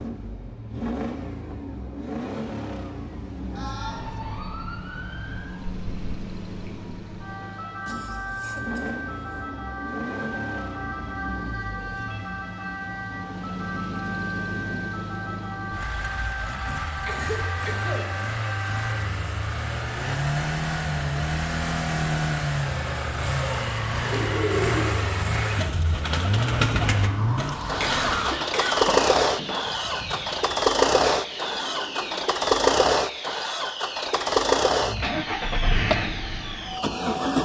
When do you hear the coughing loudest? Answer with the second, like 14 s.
28 s.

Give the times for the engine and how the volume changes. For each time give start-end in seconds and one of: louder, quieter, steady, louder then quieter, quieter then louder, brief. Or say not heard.
0.0-37.4 louder.